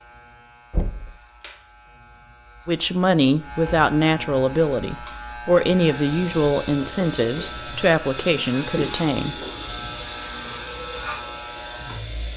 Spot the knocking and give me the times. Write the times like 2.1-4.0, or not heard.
0.7-1.1, 6.8-7.7.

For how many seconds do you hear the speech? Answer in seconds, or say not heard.
7 s.